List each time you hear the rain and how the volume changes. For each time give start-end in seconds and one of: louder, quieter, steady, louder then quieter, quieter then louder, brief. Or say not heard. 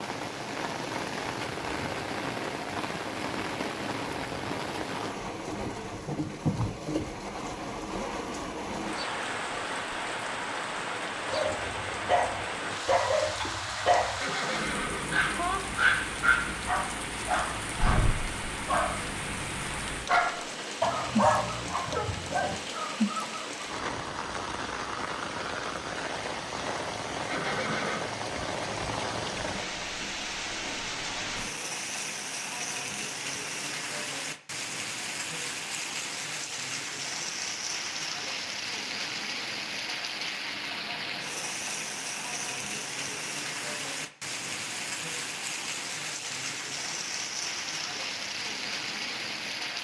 0.0-49.7 steady.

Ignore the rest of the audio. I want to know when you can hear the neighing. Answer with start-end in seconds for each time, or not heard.
14.2-15.6, 27.3-28.1.